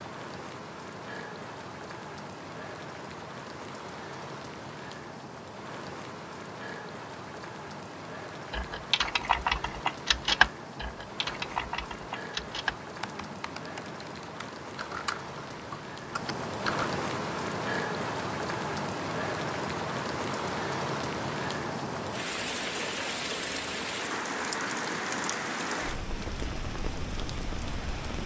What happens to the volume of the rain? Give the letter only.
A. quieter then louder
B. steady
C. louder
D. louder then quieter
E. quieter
C.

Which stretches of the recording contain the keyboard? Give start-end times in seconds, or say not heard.
8.5-16.9.